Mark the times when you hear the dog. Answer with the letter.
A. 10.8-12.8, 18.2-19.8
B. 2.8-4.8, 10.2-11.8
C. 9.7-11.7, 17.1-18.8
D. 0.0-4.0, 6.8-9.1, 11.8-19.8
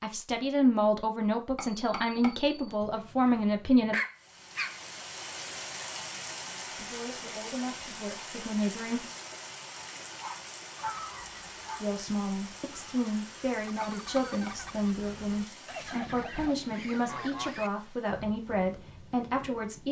B.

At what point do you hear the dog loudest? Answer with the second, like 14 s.
4 s.